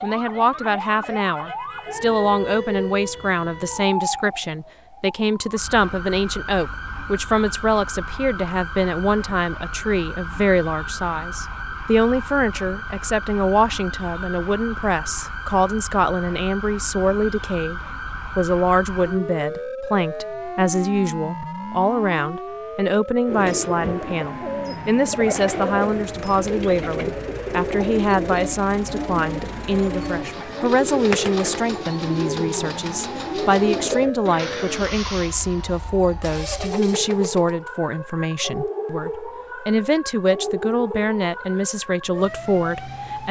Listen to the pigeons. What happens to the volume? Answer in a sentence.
The volume of the pigeons stays about the same.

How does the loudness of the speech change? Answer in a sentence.
The volume of the speech stays about the same.